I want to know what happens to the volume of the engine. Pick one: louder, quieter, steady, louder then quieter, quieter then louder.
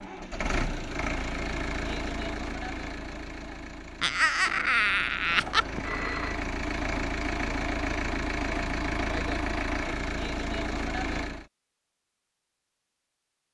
quieter then louder.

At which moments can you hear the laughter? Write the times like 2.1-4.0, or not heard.
4.0-5.7.